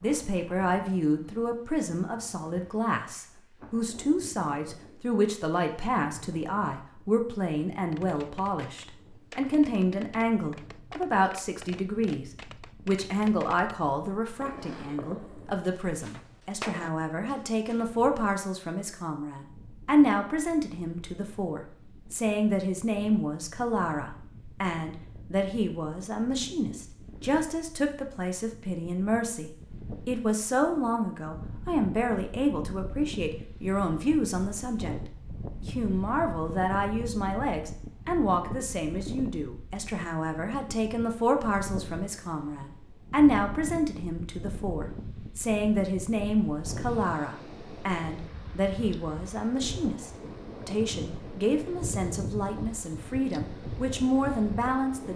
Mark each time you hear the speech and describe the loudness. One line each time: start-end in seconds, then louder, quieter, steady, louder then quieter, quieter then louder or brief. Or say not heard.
0.0-55.1 steady.